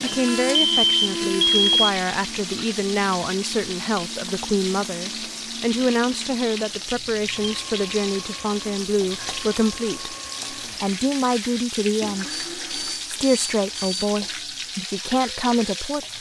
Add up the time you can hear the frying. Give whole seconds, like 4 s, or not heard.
16 s.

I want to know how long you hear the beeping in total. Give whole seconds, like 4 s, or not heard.
4 s.